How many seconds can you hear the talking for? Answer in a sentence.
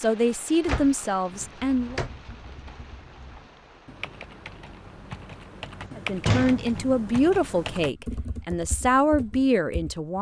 You can hear the talking for 6 seconds altogether.